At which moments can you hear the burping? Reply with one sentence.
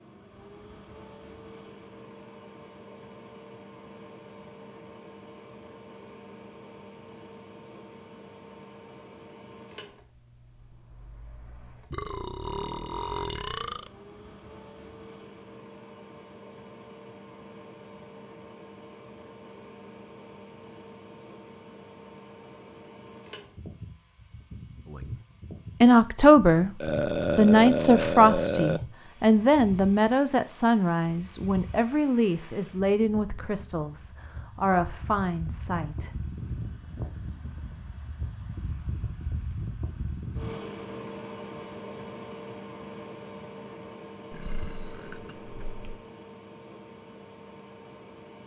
You can hear the burping from 11.9 to 13.9 s, from 26.8 to 28.8 s and from 44.3 to 46.0 s.